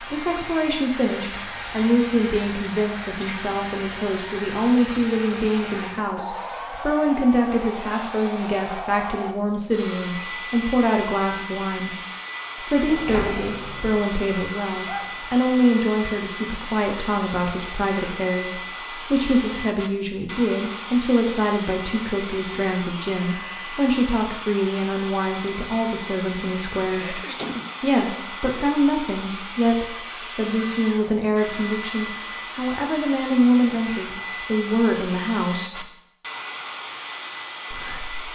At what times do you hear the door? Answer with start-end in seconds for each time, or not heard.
12.8-14.1.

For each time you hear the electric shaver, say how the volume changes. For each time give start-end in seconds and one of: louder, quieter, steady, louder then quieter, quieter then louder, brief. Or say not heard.
not heard.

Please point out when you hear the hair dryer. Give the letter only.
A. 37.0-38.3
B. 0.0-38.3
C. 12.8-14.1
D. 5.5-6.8
B.